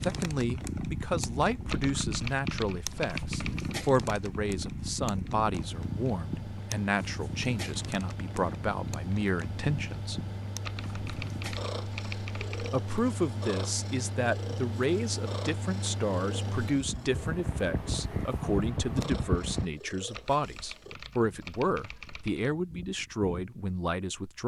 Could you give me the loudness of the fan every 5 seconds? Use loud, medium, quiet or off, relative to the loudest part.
medium, medium, medium, loud, off.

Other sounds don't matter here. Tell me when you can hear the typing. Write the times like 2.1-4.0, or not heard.
1.6-3.8, 10.6-12.7, 20.1-22.6.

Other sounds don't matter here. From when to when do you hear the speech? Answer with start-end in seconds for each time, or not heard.
0.0-10.2, 12.7-24.4.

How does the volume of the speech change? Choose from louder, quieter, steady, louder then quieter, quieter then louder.
steady.